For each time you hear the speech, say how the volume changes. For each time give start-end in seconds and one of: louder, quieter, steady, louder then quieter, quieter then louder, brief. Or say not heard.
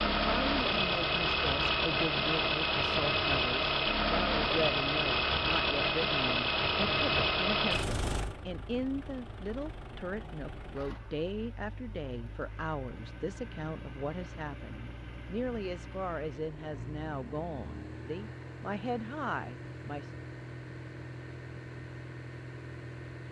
0.1-20.1 steady.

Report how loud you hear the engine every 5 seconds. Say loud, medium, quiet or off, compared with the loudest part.
loud, loud, quiet, quiet, quiet.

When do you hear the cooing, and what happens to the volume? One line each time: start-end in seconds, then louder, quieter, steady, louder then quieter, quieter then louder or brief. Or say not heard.
not heard.